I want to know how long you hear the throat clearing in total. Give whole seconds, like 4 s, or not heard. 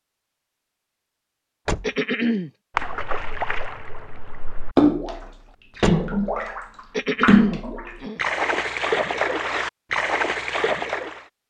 2 s.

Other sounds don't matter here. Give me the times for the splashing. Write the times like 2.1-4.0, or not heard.
2.8-11.2.